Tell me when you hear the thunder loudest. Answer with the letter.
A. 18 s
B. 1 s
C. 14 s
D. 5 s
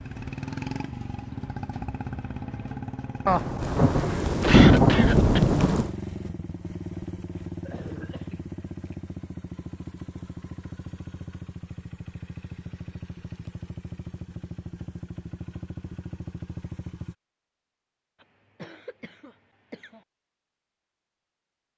D.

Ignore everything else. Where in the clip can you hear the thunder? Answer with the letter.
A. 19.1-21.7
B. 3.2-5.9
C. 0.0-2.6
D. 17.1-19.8
B.